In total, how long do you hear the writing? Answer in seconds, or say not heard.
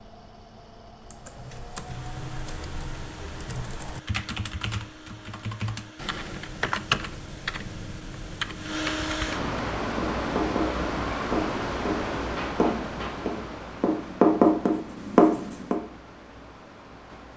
6 s.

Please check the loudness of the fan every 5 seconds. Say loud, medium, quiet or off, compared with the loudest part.
quiet, loud, loud, quiet.